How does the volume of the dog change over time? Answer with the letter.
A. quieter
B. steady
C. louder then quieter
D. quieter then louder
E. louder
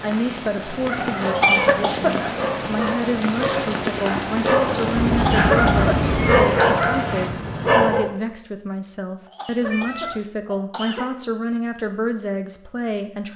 E.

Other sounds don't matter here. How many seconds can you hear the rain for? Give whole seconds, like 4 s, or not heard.
7 s.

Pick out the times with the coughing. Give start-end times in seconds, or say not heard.
1.2-2.1, 5.1-6.7, 9.2-11.1.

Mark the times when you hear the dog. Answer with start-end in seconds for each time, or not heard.
0.7-8.2.